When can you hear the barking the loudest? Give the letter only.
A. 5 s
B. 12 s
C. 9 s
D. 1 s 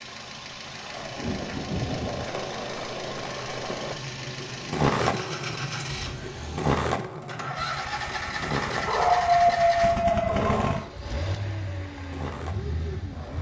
C.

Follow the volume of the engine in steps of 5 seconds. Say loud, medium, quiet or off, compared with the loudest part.
medium, loud, loud.